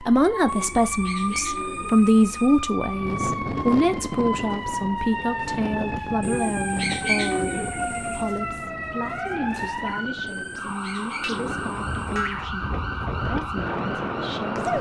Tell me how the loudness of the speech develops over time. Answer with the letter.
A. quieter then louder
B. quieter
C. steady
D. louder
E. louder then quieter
B.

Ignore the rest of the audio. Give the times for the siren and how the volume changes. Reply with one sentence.
You can hear the siren from 0.0 to 14.7 s, at a steady volume.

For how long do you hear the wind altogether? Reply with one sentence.
You can hear the wind for 12 seconds altogether.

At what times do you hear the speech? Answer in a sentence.
You can hear the speech from 0.0 to 14.6 s.